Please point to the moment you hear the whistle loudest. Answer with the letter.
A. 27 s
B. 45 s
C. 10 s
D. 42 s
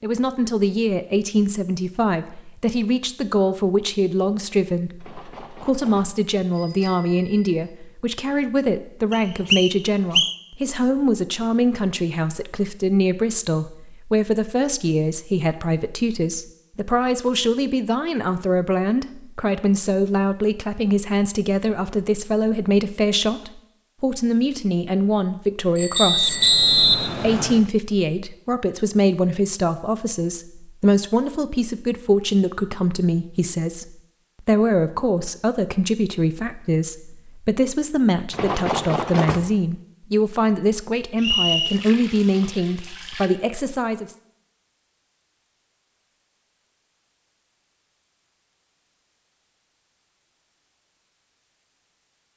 A.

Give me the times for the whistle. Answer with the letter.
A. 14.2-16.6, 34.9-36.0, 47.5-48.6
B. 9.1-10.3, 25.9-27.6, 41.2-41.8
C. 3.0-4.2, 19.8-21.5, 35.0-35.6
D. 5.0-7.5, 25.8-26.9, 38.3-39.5
B.